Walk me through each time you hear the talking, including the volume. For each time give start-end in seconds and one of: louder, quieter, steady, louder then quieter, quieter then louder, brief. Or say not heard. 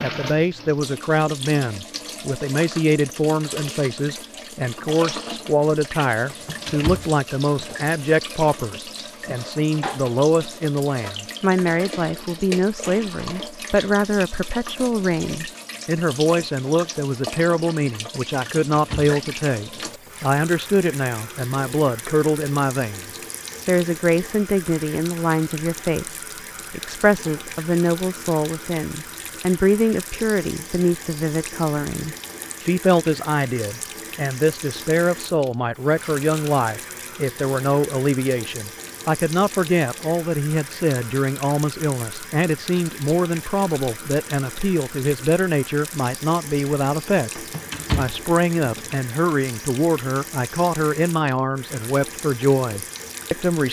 0.0-53.6 steady.